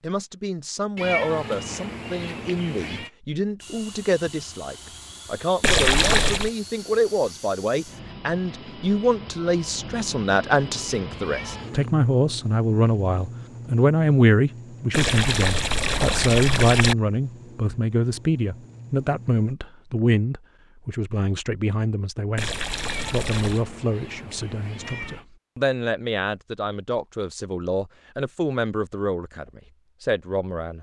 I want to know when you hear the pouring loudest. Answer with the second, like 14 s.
6 s.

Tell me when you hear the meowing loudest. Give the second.
1 s.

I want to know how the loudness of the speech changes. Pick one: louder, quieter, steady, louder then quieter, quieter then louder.
louder then quieter.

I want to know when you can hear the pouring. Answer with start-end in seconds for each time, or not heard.
5.6-6.5, 14.9-16.9, 22.4-23.6.